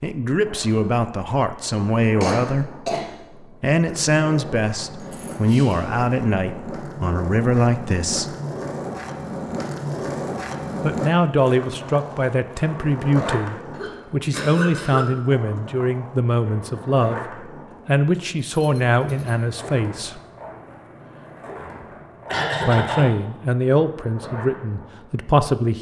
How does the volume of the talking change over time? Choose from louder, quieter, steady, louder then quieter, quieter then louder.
steady.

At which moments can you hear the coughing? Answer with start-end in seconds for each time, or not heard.
2.2-3.1, 13.8-15.1, 22.2-23.1.